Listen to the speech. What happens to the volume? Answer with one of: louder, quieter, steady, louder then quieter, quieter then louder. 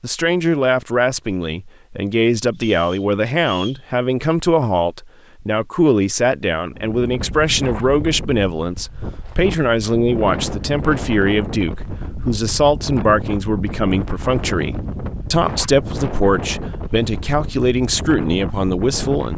steady.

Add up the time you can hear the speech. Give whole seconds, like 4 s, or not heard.
19 s.